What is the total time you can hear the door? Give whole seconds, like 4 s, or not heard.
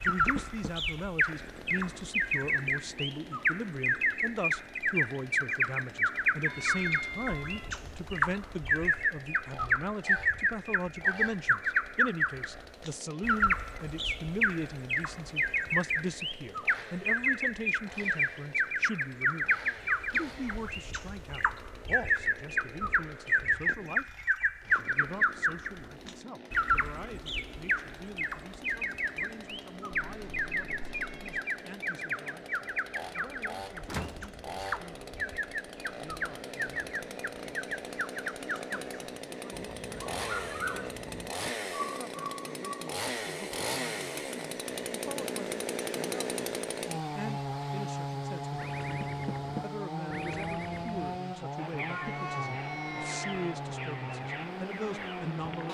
2 s.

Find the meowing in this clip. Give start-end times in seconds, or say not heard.
6.5-7.7, 29.9-31.4, 51.9-53.5.